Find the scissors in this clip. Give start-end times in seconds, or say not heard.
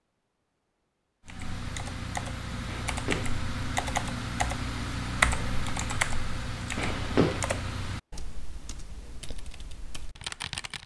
2.6-3.4, 6.8-7.5.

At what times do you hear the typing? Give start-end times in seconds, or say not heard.
1.2-10.8.